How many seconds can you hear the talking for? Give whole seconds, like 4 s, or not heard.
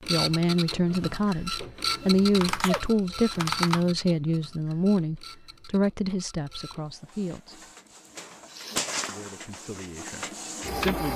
10 s.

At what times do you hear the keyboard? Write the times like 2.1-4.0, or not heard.
2.3-3.9.